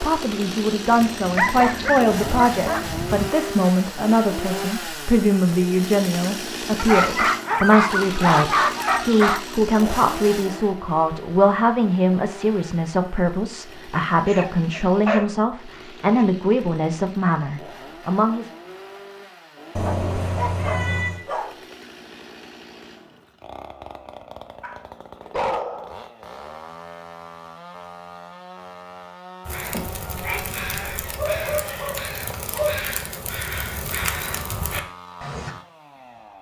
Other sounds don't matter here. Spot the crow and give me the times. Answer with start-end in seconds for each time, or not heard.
29.4-35.5.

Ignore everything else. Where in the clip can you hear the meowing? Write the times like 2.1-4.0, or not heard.
0.9-2.9, 19.8-21.2, 29.7-31.1.